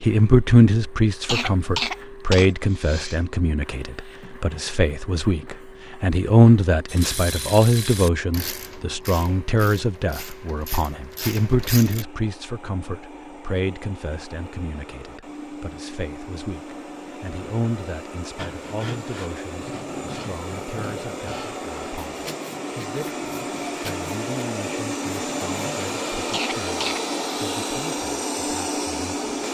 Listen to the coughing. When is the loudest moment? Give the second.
2 s.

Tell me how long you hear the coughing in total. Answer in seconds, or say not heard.
3 s.